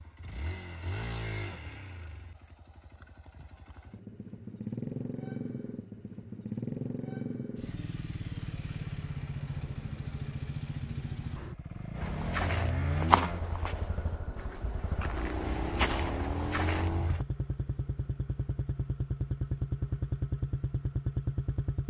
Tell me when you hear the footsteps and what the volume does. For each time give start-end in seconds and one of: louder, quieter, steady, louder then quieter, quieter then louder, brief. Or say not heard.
11.9-17.2 quieter then louder.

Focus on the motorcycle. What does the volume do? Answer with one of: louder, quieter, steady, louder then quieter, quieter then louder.
louder.